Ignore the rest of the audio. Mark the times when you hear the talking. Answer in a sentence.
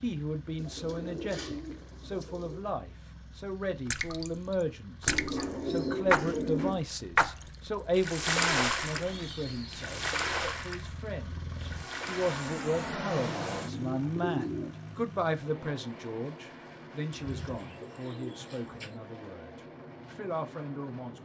The talking can be heard from 0.0 to 21.1 s.